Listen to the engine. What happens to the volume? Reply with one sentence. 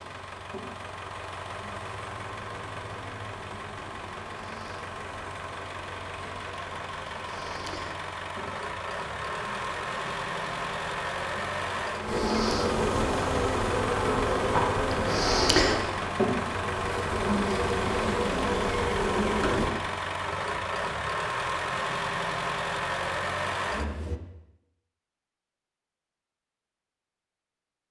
The loudness of the engine goes up.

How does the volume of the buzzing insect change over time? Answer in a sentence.
The volume of the buzzing insect goes up.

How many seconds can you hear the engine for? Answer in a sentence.
You can hear the engine for 24 seconds altogether.